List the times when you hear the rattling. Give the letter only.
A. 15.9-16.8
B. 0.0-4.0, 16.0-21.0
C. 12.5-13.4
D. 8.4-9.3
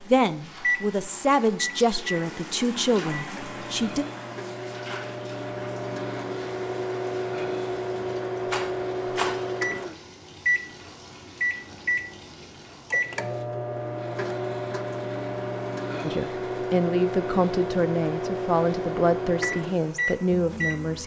D.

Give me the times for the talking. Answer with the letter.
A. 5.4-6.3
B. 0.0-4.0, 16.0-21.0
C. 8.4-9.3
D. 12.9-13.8
B.